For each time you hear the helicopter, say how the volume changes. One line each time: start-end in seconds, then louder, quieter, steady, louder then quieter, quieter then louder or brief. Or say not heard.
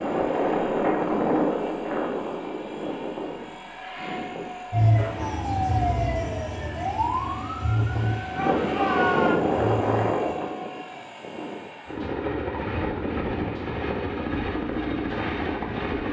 0.0-16.0 quieter then louder.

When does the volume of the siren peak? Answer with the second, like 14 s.
5 s.